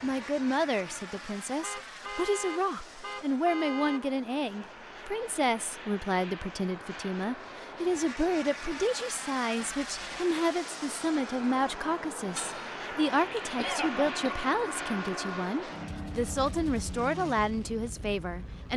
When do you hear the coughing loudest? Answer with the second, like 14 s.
14 s.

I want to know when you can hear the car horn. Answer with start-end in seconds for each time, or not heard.
1.6-4.0, 9.6-10.2, 13.8-15.5.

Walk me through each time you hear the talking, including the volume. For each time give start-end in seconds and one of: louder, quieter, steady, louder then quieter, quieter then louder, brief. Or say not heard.
0.0-18.7 steady.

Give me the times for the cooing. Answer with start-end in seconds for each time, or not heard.
not heard.